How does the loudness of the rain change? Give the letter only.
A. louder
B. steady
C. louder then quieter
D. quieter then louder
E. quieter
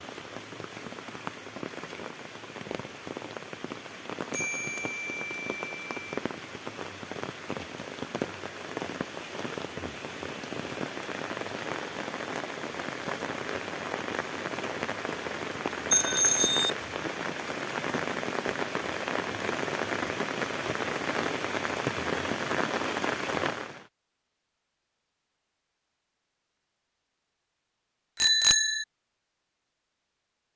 A.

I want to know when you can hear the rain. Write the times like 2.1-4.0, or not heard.
0.0-23.9.